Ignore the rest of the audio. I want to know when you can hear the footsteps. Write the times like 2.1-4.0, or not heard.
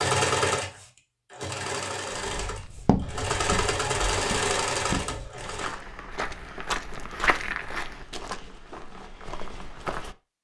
2.2-10.2.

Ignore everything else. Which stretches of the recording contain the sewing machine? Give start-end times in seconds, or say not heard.
0.0-5.8.